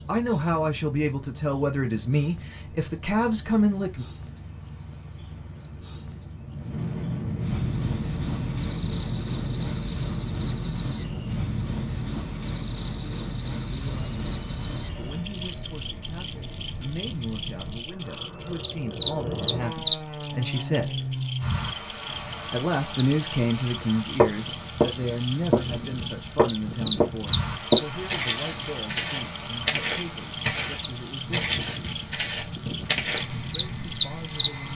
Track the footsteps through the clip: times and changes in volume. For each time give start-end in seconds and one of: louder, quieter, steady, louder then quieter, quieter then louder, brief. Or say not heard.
23.8-33.4 quieter.